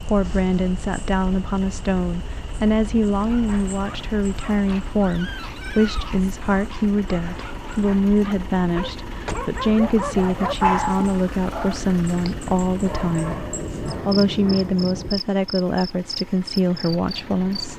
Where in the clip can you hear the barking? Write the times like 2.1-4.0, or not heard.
3.1-14.8.